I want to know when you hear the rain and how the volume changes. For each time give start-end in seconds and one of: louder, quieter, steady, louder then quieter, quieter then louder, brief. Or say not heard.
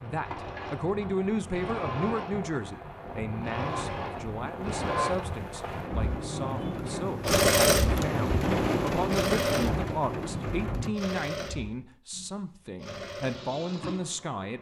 0.0-10.9 louder.